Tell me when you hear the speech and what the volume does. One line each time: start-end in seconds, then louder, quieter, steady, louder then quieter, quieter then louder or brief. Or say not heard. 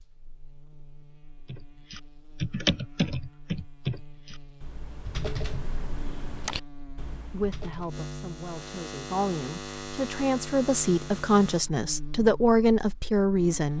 7.3-13.7 louder.